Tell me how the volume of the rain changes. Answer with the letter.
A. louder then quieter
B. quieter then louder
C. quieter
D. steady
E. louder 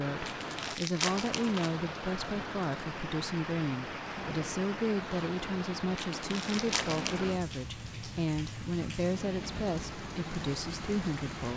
D.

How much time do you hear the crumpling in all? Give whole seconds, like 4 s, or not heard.
3 s.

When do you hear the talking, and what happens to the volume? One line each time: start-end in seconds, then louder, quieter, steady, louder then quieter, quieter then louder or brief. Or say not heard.
0.0-11.5 steady.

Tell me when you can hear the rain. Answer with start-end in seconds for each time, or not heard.
0.0-11.5.